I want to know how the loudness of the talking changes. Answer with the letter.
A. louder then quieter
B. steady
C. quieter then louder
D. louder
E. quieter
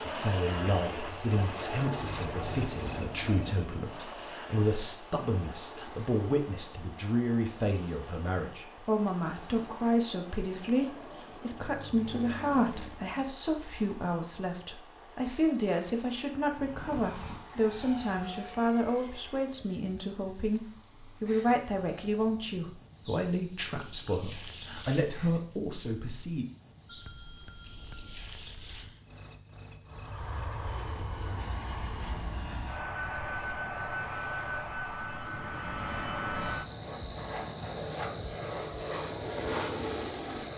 B.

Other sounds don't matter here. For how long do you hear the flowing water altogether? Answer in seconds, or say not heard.
not heard.